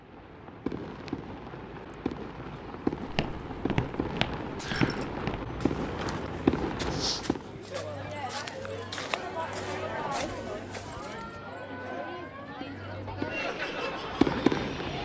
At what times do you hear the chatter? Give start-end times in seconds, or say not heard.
7.4-14.9.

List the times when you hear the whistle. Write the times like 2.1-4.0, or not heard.
4.5-5.1.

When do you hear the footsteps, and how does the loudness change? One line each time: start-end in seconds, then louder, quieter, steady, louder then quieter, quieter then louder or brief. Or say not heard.
3.0-11.3 quieter.